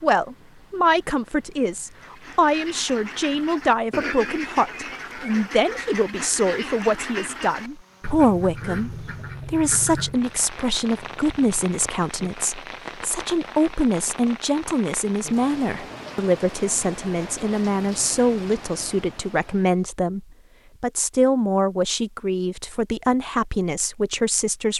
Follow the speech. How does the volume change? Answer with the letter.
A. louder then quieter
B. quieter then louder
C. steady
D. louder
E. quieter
C.